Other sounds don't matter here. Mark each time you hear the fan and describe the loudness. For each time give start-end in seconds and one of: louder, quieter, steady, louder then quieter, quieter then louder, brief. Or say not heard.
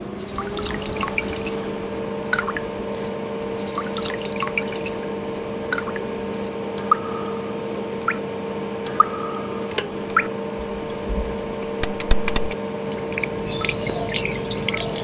0.0-14.9 steady.